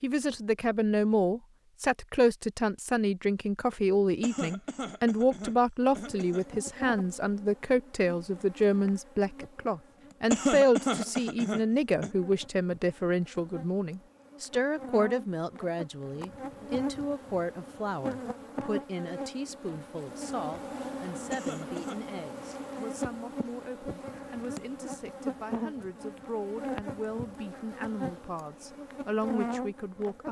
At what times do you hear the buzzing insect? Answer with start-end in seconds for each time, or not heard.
5.8-30.2.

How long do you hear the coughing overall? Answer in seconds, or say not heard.
5 s.